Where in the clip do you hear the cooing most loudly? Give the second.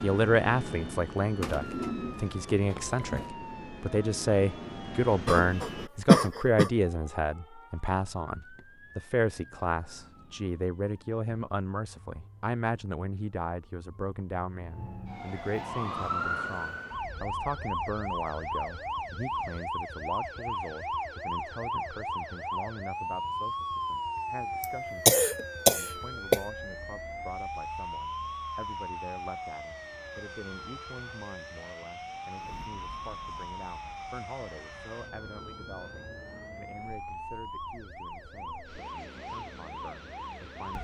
2 s.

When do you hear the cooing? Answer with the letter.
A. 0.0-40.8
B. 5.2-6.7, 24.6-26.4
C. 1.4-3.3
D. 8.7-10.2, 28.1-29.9
C.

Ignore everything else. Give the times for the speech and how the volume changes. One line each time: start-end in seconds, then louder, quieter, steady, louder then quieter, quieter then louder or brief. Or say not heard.
0.0-40.8 quieter.